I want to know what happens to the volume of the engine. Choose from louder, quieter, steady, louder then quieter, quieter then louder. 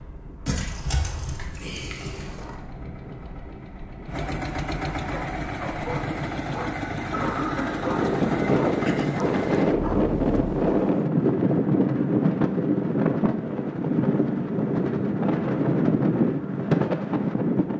louder.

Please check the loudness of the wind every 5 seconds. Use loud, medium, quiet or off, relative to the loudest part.
quiet, loud, loud, loud.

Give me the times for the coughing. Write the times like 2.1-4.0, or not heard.
7.1-8.2.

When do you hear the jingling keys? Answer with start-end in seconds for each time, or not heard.
0.5-2.5.